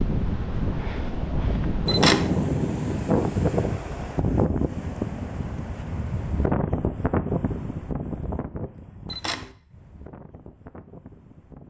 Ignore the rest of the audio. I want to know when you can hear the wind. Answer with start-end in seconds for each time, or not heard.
0.0-11.6.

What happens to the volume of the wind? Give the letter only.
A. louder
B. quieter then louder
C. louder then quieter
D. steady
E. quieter
E.